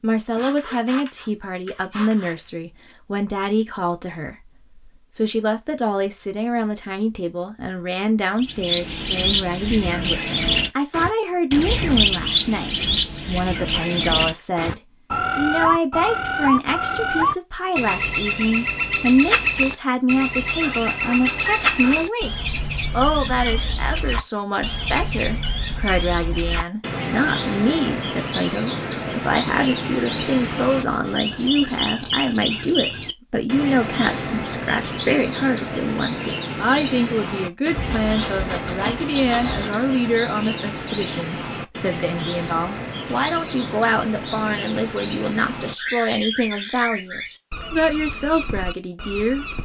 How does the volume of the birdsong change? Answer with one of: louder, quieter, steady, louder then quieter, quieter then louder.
quieter.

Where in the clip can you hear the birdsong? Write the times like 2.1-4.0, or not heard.
8.4-49.6.